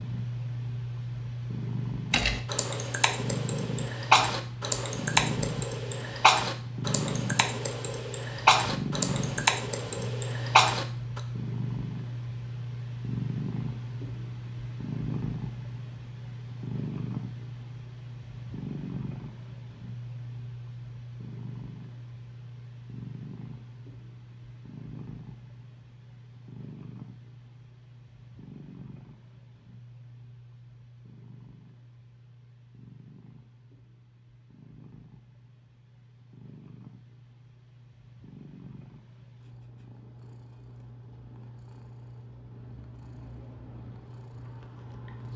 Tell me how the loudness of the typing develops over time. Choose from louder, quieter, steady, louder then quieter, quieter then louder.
steady.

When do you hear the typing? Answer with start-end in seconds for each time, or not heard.
2.1-11.2.